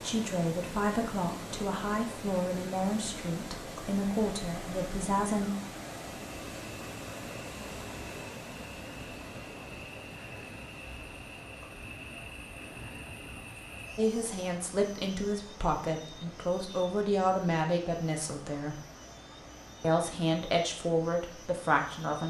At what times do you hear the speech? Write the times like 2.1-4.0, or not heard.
0.0-5.5, 13.9-18.8, 19.8-22.2.